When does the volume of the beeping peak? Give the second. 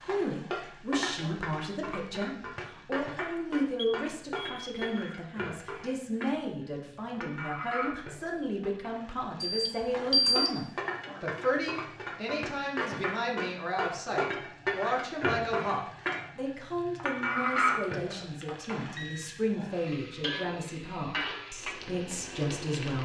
10 s.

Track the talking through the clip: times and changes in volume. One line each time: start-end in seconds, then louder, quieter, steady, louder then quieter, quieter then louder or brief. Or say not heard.
0.0-23.0 steady.